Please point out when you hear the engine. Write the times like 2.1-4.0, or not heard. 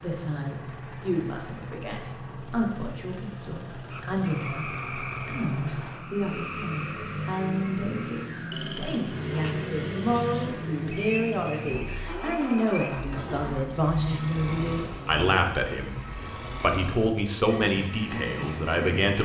0.0-19.1.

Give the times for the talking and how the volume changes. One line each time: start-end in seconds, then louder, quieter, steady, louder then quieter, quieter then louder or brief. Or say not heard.
0.0-16.0 louder
16.6-19.2 brief.